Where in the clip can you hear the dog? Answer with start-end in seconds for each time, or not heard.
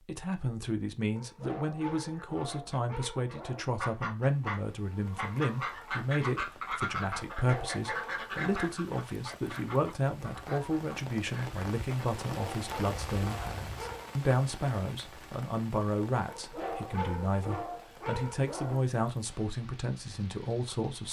1.1-3.6, 7.3-8.8, 12.2-14.2, 16.2-18.9.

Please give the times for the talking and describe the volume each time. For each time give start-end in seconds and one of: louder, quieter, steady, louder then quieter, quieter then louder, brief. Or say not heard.
0.1-21.0 steady.